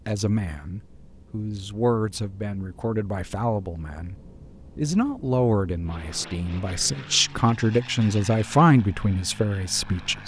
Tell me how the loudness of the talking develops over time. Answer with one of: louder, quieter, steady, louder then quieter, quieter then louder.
louder.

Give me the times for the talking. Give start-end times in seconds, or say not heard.
0.1-10.2.